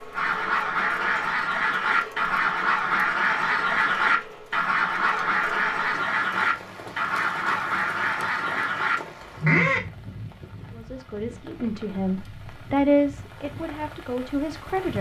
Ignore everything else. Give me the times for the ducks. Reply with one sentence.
You can hear the ducks from 0.1 to 9.8 s.